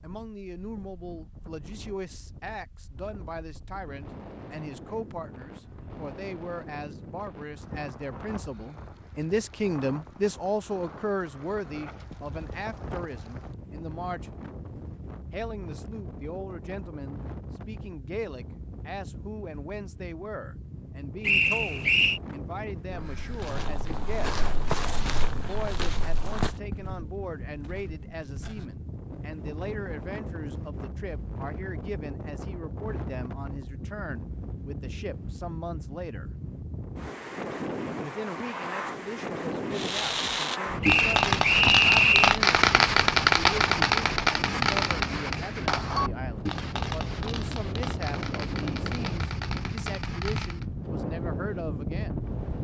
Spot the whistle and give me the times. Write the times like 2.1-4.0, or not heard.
21.2-22.2, 40.8-42.4.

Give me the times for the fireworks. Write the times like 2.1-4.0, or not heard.
39.7-50.6.